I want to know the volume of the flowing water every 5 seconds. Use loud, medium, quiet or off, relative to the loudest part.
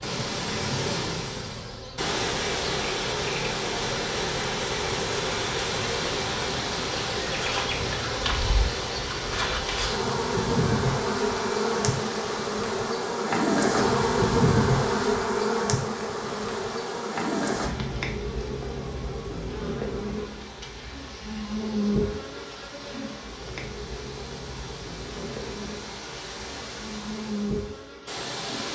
loud, loud, medium, quiet, quiet, medium.